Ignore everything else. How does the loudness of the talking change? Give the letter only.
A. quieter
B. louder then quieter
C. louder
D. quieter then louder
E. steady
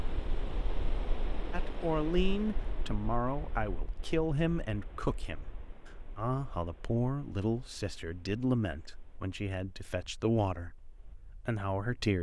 E.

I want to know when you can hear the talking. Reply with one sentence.
The talking can be heard from 1.5 to 12.1 s.